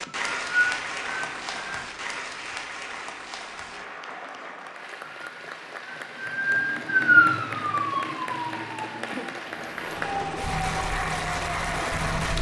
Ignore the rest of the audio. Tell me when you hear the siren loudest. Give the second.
7 s.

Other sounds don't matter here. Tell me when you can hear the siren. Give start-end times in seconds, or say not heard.
0.0-1.9, 5.0-12.3.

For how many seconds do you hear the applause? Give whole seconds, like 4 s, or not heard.
12 s.